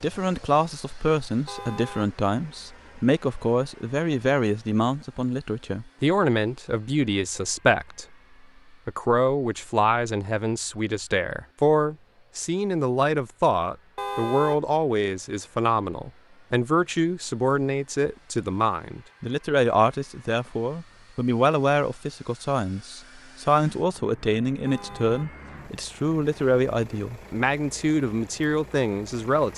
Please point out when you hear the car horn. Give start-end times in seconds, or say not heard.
1.4-2.1, 13.9-14.7, 24.6-25.4.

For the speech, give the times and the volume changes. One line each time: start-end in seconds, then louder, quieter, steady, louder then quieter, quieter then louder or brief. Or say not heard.
0.0-8.1 steady
8.8-29.5 steady.